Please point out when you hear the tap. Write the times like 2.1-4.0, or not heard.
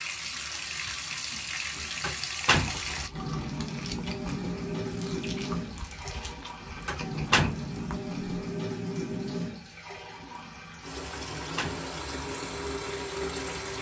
0.0-13.7.